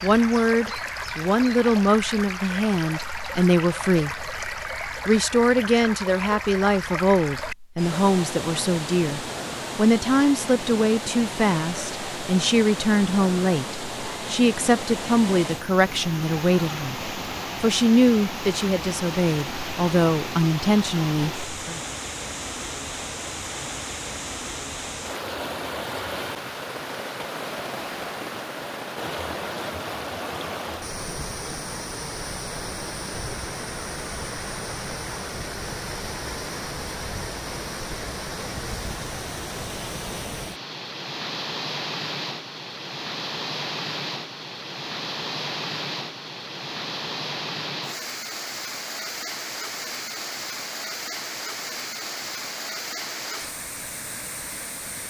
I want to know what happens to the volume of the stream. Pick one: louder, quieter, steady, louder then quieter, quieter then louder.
steady.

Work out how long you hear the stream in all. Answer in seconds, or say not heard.
55 s.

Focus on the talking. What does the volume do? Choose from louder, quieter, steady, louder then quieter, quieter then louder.
steady.